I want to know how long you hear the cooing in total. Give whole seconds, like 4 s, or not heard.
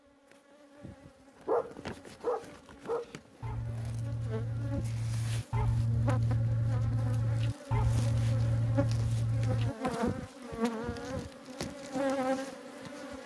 not heard.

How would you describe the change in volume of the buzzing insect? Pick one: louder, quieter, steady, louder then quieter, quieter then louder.
louder.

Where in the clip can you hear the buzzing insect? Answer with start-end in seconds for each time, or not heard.
0.0-13.2.